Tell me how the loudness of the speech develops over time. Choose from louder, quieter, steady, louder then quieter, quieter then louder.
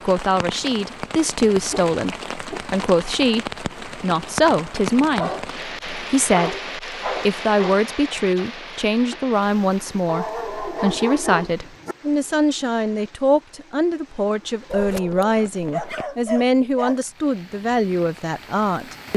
steady.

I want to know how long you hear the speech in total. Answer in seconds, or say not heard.
19 s.